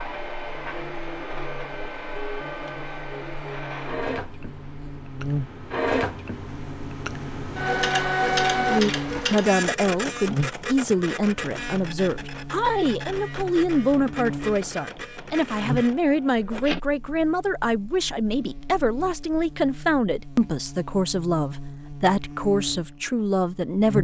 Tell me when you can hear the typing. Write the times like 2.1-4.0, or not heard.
not heard.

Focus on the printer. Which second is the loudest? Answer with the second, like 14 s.
8 s.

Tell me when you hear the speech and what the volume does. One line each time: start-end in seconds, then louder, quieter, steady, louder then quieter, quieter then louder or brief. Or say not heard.
8.6-23.9 steady.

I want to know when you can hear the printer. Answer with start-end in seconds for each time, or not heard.
0.0-16.8.